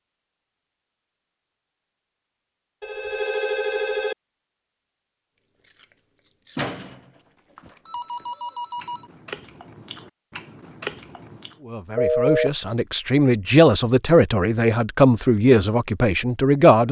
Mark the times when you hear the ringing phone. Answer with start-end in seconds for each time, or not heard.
2.8-4.2, 6.5-9.1, 11.9-12.5.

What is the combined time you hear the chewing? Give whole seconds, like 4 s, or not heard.
6 s.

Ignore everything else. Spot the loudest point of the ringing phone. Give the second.
12 s.